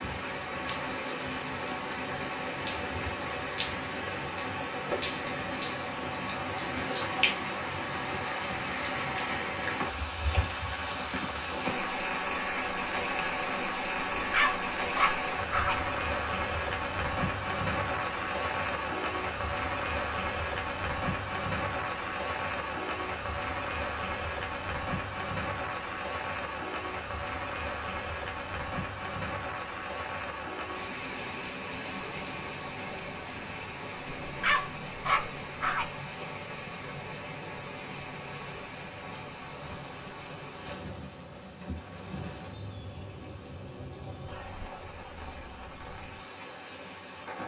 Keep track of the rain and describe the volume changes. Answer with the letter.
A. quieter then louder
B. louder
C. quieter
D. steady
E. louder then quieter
C.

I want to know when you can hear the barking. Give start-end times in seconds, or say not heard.
14.2-15.9, 34.0-35.9.